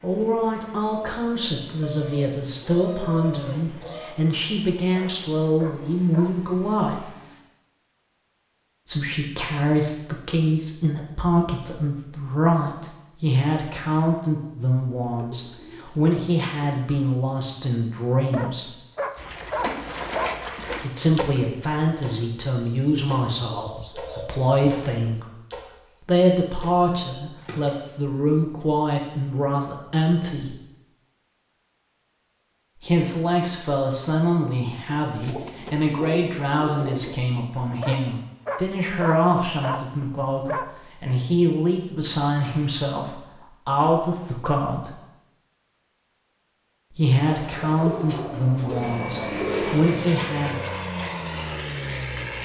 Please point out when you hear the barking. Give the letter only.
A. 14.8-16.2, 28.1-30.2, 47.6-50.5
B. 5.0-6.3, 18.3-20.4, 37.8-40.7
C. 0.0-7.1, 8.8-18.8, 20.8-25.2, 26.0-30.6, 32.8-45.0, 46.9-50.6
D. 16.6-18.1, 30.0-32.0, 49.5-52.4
B.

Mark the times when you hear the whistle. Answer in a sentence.
You can't hear the whistle here.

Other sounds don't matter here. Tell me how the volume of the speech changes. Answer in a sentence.
The loudness of the speech stays about the same.